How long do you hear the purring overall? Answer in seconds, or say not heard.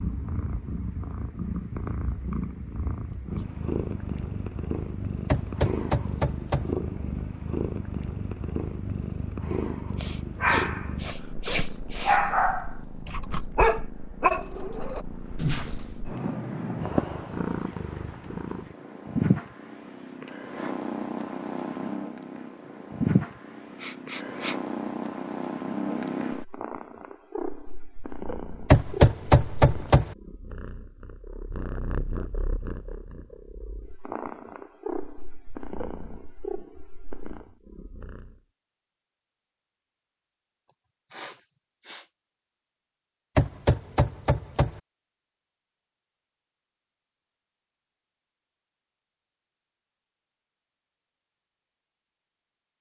38 s.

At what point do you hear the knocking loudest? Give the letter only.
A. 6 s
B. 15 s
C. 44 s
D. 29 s
D.